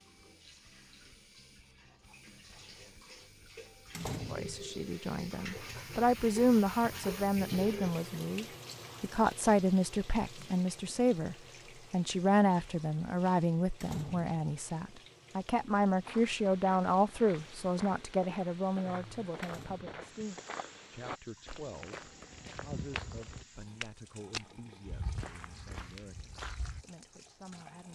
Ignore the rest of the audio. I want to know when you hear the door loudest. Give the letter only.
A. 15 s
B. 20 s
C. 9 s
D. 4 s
D.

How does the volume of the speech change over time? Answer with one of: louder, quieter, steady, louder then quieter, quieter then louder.
quieter.